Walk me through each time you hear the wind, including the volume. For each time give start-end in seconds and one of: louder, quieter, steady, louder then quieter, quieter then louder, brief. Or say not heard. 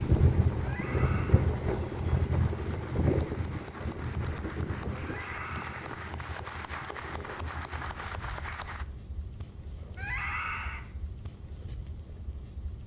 0.0-12.8 quieter.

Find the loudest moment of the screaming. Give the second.
10 s.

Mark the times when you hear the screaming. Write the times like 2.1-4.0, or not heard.
0.6-1.5, 5.0-5.9, 9.9-10.8.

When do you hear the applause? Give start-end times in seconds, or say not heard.
0.0-8.8.